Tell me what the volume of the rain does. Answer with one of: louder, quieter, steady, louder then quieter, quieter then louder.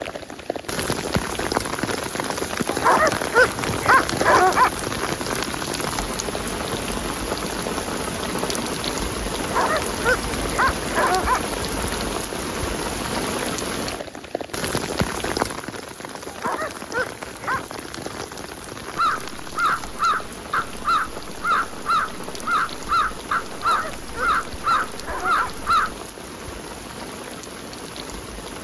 quieter.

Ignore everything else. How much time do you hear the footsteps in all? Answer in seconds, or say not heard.
not heard.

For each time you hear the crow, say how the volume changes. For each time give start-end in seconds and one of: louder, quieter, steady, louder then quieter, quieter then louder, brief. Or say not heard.
18.9-25.9 steady.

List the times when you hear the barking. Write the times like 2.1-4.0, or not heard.
2.6-4.7, 9.3-11.4, 16.2-17.6, 23.5-25.5.